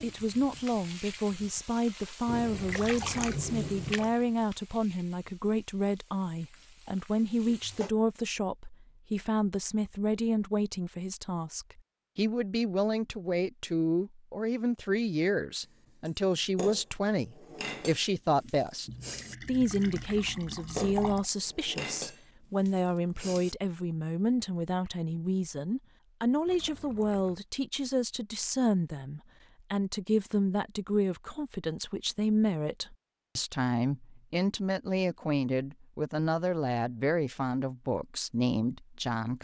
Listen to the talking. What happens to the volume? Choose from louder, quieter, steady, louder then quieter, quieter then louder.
steady.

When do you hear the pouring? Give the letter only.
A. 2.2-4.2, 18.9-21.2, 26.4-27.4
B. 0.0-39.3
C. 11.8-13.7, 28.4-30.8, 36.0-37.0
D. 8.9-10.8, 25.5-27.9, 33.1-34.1
A.